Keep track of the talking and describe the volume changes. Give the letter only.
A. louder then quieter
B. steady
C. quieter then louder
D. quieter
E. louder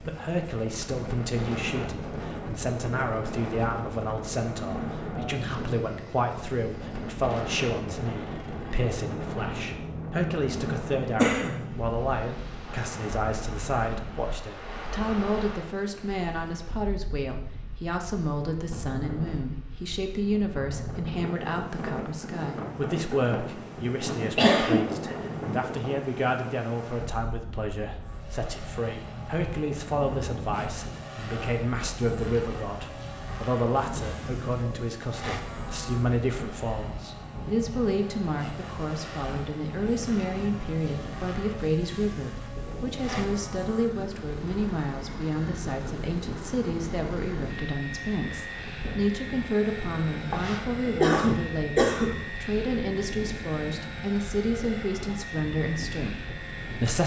B.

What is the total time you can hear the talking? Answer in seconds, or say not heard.
57 s.